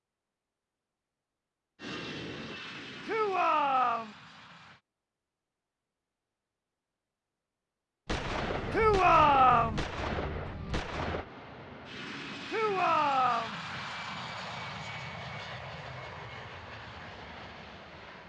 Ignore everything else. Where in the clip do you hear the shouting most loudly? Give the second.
9 s.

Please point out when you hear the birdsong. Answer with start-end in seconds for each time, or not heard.
not heard.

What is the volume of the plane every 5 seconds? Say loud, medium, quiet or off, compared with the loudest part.
loud, off, loud, loud.